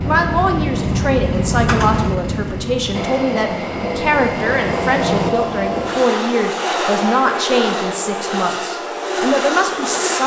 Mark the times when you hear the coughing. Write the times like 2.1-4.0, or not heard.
not heard.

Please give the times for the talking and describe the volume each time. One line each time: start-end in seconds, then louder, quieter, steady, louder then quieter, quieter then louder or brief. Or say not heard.
0.0-10.2 steady.